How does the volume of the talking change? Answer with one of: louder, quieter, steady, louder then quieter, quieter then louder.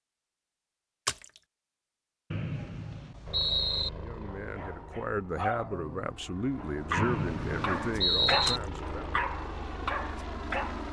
steady.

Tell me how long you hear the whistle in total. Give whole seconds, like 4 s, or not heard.
3 s.